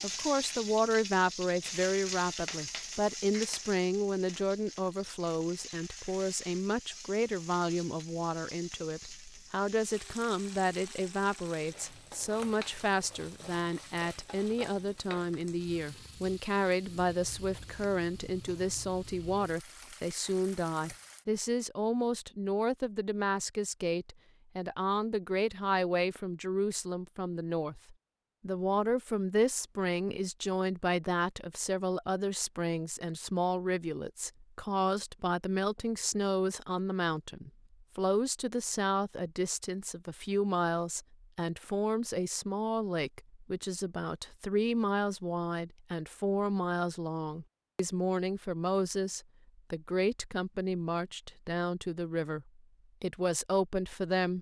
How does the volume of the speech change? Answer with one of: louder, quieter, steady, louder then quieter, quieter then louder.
steady.